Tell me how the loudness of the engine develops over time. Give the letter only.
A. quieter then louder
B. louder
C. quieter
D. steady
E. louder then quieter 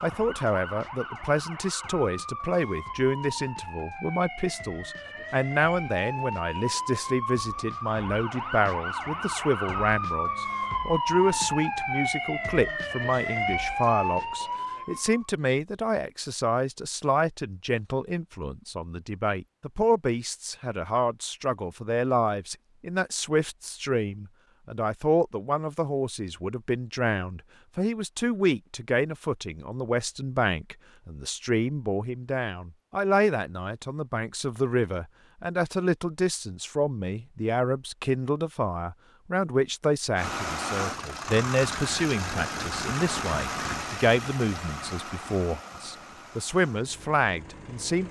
C.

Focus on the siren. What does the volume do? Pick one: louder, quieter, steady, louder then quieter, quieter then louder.
louder.